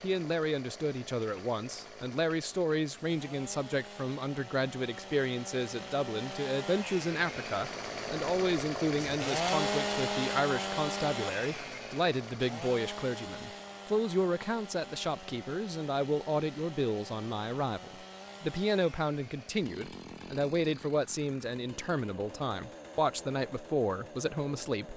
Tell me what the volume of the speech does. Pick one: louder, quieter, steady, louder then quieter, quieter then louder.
steady.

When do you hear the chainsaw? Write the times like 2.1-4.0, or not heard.
0.0-24.9.